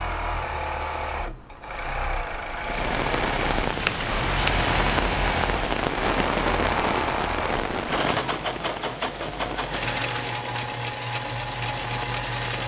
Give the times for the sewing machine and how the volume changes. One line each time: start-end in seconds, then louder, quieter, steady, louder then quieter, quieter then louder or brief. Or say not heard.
0.0-12.6 steady.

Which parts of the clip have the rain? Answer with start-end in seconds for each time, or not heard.
2.5-12.6.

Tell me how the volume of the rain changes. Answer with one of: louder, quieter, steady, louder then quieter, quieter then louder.
quieter.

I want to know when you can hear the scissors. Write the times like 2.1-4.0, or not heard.
3.8-4.7.